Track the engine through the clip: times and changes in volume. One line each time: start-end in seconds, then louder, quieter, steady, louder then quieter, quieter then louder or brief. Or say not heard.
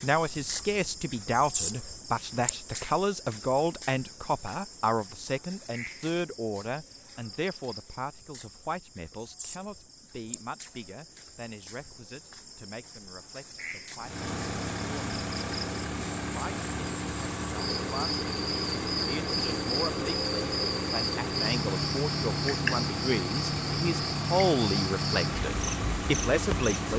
14.0-26.9 steady.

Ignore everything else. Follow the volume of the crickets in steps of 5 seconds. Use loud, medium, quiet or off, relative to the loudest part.
medium, quiet, quiet, loud, loud, loud.